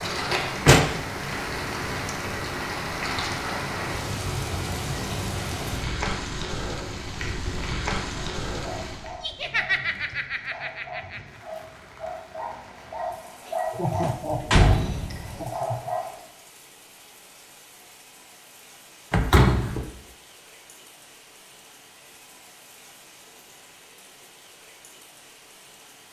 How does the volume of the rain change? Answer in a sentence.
The loudness of the rain goes down.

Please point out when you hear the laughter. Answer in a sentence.
The laughter can be heard from 9.2 to 11.2 s and from 13.4 to 15.9 s.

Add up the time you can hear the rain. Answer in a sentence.
You can hear the rain for 26 seconds altogether.